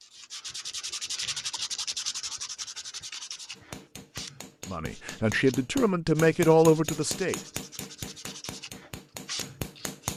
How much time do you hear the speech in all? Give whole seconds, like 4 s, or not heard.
3 s.